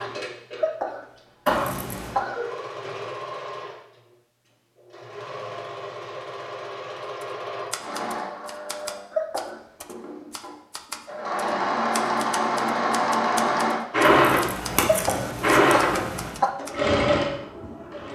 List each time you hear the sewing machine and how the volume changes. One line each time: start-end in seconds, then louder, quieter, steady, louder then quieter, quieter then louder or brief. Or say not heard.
0.0-18.0 louder.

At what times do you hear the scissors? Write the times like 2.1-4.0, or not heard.
1.4-2.1, 14.0-16.4.